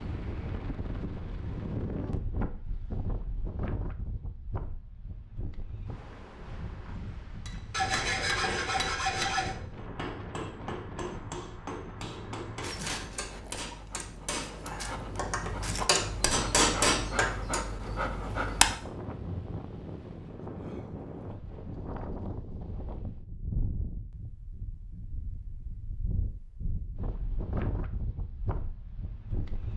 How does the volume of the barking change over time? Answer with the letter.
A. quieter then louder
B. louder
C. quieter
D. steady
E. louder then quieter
B.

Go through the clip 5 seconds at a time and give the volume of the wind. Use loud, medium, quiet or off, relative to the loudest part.
loud, medium, medium, loud, loud, loud.